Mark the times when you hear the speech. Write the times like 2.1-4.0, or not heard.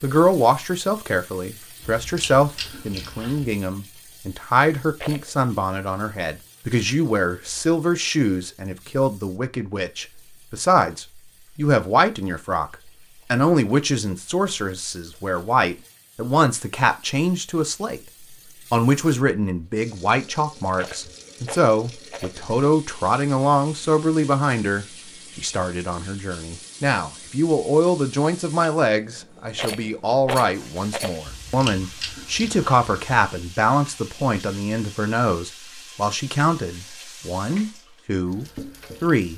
0.0-18.0, 18.7-39.3.